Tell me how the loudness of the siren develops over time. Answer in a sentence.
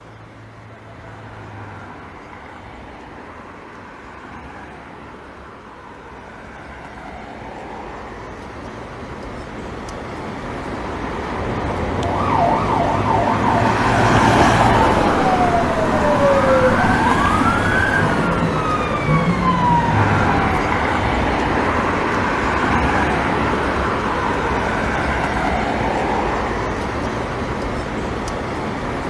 The loudness of the siren stays about the same.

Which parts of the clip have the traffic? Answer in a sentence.
The traffic can be heard from 0.0 to 29.0 s.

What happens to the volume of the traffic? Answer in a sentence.
The volume of the traffic goes up.